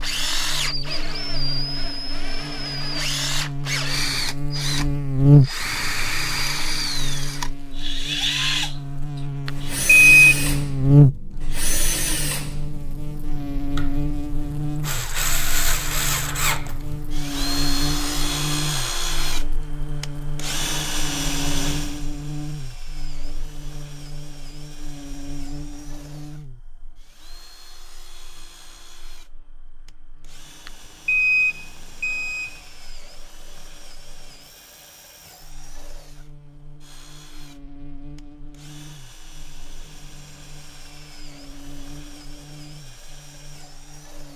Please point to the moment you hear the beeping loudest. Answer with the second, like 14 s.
10 s.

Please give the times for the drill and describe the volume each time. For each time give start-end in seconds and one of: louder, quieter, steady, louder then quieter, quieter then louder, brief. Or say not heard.
0.0-44.3 quieter.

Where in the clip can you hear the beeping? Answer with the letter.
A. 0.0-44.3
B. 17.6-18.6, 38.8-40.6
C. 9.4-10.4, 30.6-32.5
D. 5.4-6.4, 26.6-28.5
C.